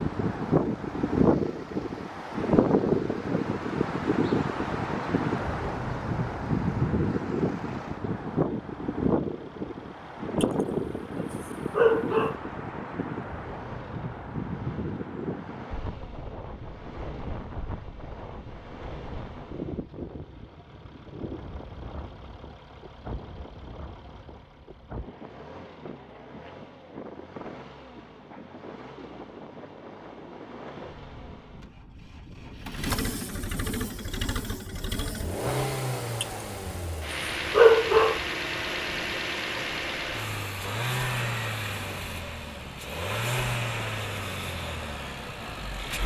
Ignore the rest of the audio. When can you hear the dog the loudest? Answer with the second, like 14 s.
38 s.